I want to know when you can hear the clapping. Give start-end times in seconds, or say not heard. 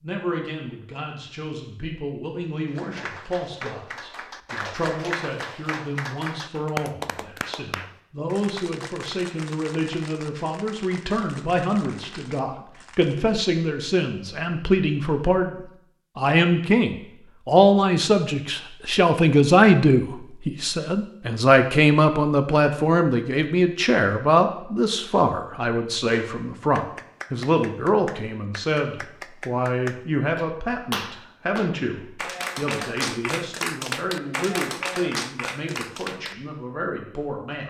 2.7-13.3, 26.1-36.4.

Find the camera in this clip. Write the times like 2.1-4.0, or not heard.
not heard.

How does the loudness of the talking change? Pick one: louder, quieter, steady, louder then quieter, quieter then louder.
louder then quieter.